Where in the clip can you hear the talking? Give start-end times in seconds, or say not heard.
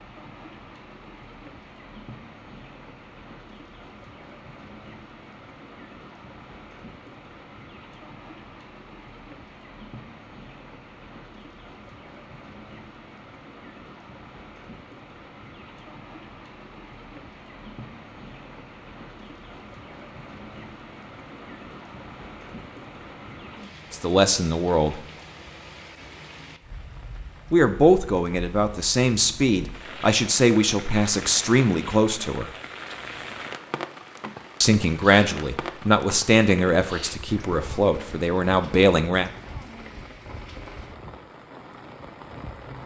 23.9-25.0, 27.5-32.5, 34.6-39.3.